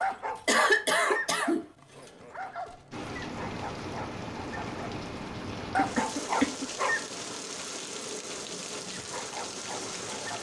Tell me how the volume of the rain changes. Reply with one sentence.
The volume of the rain stays about the same.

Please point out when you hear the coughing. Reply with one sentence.
The coughing can be heard from 0.5 to 1.7 s and from 5.8 to 6.7 s.